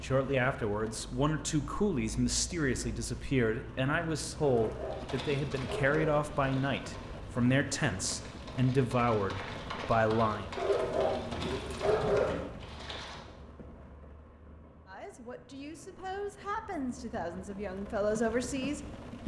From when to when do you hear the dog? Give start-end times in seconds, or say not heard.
4.4-6.2, 10.6-12.4.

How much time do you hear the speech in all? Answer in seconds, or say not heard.
15 s.